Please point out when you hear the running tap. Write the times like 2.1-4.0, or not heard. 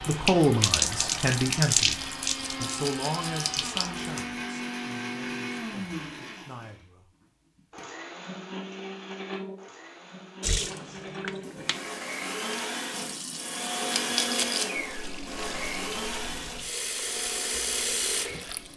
0.0-4.2, 10.4-18.7.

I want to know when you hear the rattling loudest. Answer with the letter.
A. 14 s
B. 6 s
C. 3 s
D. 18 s
A.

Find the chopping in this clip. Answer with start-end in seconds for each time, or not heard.
not heard.